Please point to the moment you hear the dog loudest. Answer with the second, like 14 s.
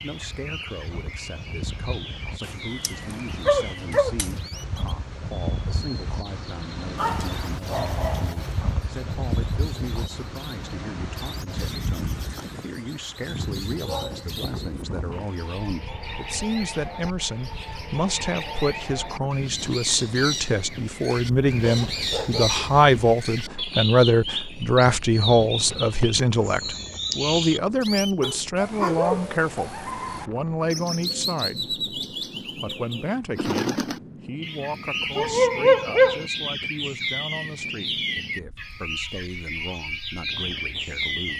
36 s.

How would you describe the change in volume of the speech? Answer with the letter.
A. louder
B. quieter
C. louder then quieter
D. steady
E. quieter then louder
C.